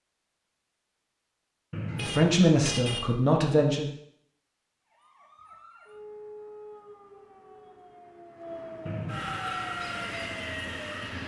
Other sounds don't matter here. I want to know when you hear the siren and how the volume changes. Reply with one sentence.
You can hear the siren from 4.9 to 11.2 s, getting louder.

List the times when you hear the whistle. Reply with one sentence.
The whistle can be heard from 1.7 to 2.3 s and from 8.8 to 9.4 s.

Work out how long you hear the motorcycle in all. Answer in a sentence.
You can hear the motorcycle for 2 seconds altogether.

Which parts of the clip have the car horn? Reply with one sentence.
You can hear the car horn from 1.9 to 3.1 s.